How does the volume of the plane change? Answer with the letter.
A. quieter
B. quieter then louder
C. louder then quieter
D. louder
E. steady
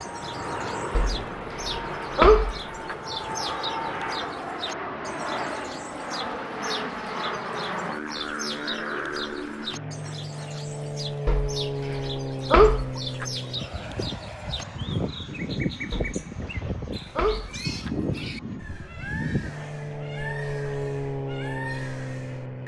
E.